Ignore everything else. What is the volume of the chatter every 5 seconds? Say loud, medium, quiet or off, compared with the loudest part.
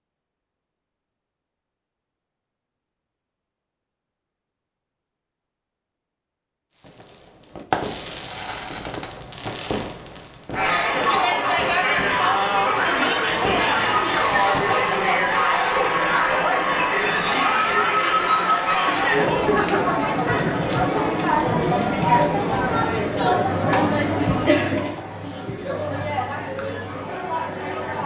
off, off, loud, loud, loud, medium.